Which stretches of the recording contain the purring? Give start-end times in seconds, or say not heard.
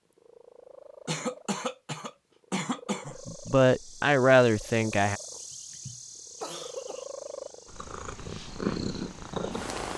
0.1-9.9.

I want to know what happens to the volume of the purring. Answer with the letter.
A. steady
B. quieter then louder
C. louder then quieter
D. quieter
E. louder
E.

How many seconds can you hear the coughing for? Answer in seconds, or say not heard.
4 s.